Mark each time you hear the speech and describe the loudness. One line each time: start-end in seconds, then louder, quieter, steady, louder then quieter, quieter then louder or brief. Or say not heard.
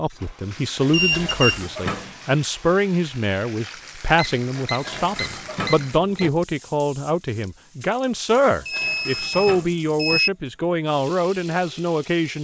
0.0-12.3 steady.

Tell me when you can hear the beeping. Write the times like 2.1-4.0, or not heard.
0.9-1.6, 4.2-6.3, 8.7-10.3.